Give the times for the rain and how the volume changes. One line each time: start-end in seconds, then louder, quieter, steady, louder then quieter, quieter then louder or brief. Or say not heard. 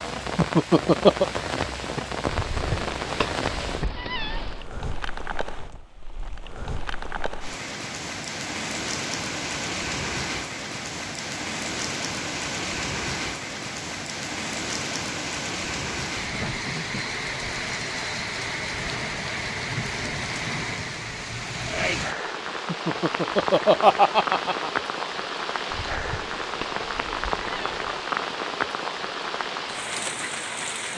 0.0-30.9 steady.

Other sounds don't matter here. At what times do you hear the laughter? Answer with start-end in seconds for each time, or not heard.
0.3-1.2, 22.6-24.7.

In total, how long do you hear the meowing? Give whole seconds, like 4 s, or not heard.
5 s.